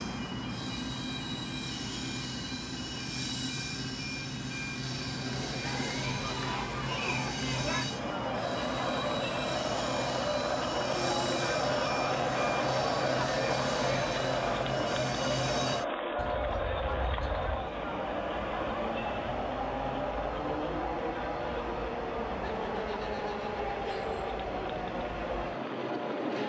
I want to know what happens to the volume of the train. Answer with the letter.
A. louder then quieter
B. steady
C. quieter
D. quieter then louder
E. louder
B.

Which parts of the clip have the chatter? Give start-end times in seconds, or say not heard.
4.8-26.4.